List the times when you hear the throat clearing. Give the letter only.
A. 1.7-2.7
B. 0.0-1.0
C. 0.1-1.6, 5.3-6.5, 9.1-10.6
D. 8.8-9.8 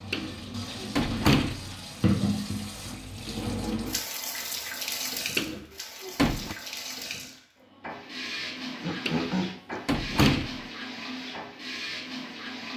D.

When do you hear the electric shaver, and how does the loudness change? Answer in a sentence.
You can't hear the electric shaver here.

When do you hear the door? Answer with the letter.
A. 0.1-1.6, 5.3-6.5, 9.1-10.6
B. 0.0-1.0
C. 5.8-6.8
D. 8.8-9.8
A.